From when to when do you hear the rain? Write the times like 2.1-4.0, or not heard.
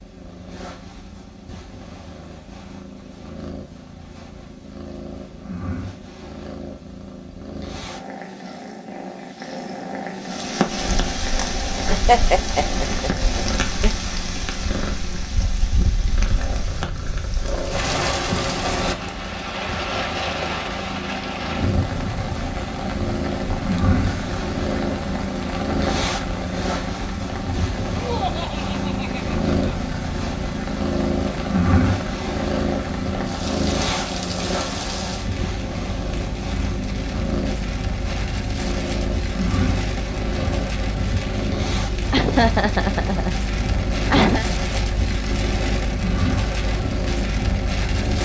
10.2-48.2.